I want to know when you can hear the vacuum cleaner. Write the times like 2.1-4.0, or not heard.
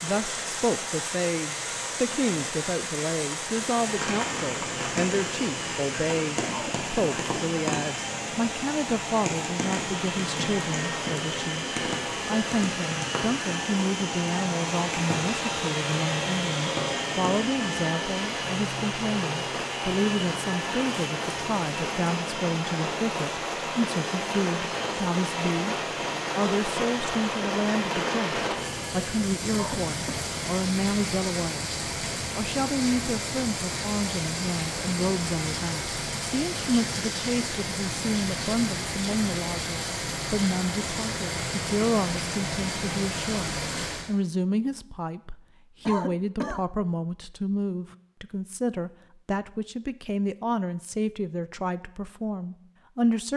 3.6-29.2.